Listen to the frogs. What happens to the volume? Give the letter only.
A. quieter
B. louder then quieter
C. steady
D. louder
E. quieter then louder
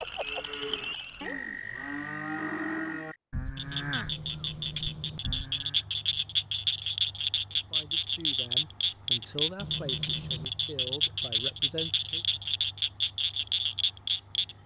D.